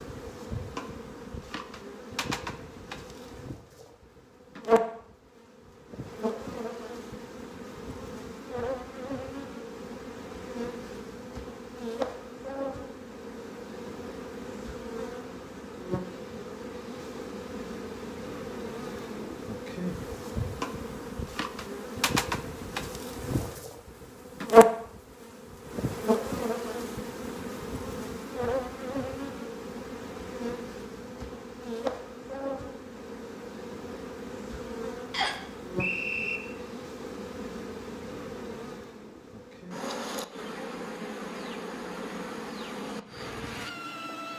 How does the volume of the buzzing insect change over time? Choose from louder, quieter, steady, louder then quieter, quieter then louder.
louder then quieter.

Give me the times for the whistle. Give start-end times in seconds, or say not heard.
35.1-36.4.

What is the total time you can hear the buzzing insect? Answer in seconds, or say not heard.
44 s.